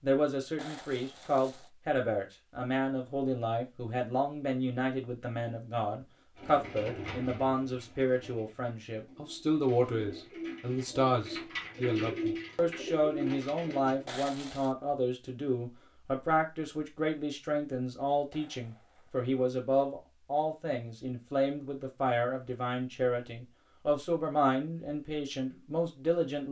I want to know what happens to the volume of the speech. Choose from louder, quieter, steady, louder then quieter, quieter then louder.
steady.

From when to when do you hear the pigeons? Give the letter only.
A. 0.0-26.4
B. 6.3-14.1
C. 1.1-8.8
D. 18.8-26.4
B.